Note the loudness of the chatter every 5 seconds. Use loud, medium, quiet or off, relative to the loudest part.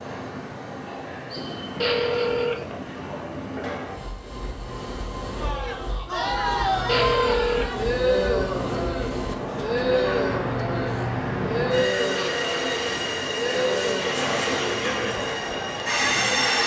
off, loud, loud, medium.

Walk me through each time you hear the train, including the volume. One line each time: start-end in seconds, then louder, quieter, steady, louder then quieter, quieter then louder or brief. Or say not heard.
0.0-16.6 louder.